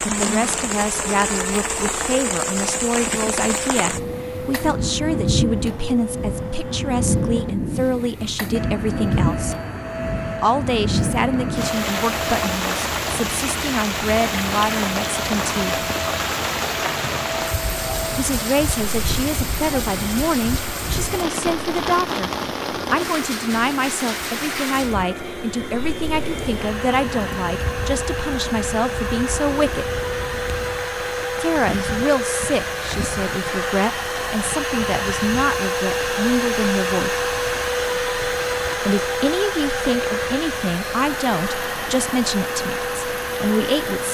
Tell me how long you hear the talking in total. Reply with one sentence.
The talking can be heard for 37 seconds in total.